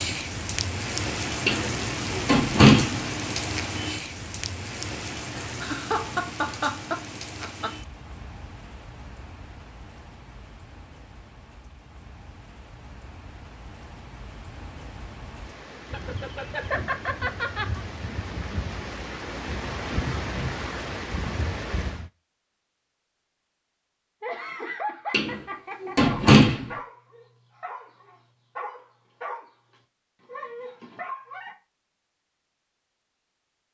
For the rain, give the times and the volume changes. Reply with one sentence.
The rain can be heard from 0.0 to 22.1 s, getting quieter then louder.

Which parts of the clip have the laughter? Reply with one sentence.
You can hear the laughter from 5.6 to 7.7 s, from 15.9 to 17.8 s and from 24.2 to 25.9 s.